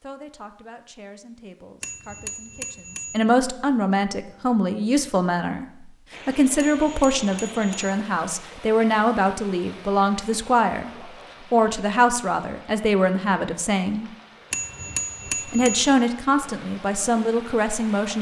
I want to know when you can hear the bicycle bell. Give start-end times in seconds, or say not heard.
1.8-3.2, 6.5-8.0, 14.5-15.9.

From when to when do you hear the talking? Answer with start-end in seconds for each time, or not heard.
0.0-5.7, 6.2-10.9, 11.5-14.1, 15.4-18.1.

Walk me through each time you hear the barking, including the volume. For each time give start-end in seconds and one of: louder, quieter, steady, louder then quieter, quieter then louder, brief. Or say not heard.
not heard.